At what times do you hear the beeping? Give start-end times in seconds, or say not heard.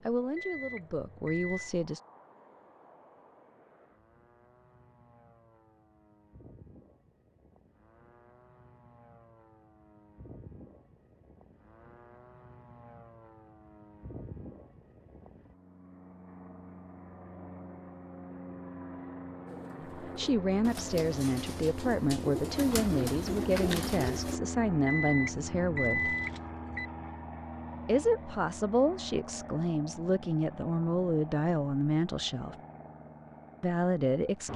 0.3-1.8, 24.9-26.9.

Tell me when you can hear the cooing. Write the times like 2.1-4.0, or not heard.
19.4-24.4.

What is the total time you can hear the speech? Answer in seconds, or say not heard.
14 s.